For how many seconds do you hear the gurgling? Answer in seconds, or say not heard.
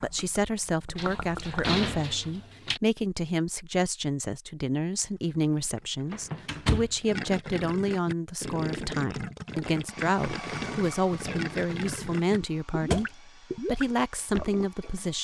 12 s.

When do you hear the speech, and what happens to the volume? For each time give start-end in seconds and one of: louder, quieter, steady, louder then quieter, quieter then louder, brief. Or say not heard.
0.0-15.1 steady.